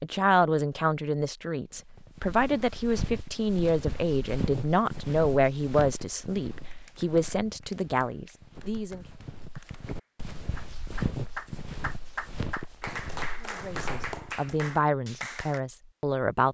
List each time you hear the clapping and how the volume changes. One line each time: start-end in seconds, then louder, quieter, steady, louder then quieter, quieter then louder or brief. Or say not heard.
6.7-15.6 louder.